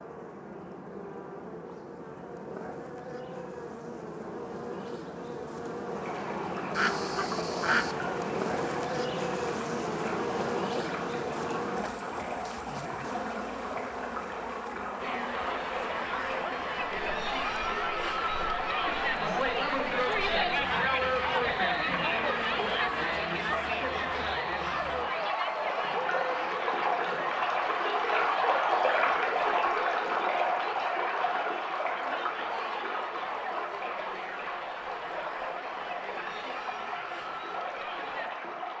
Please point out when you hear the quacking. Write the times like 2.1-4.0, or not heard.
6.8-8.0.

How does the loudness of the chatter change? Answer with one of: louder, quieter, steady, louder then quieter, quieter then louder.
quieter.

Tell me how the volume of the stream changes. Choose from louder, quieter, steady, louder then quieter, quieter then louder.
louder then quieter.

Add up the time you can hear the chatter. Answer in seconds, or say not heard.
24 s.